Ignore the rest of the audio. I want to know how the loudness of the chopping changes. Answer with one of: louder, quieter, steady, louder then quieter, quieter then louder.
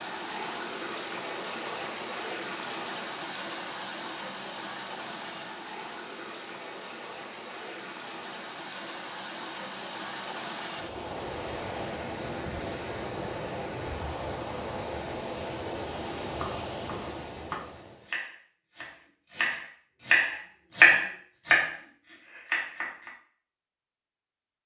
louder then quieter.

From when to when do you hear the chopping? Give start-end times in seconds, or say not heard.
16.4-23.1.